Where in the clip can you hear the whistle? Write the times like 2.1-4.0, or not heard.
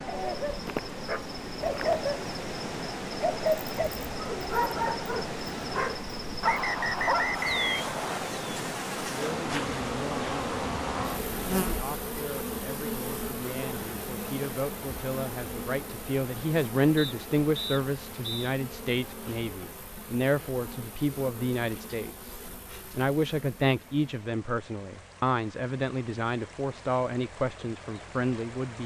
6.4-8.3, 16.9-18.5.